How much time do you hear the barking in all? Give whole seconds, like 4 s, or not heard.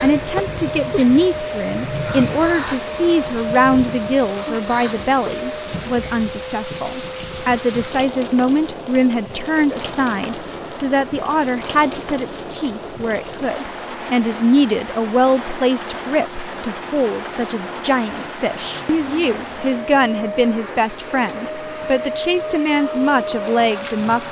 not heard.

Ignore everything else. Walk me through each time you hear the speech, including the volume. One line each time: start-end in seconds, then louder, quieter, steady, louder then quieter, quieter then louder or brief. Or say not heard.
0.0-24.2 steady.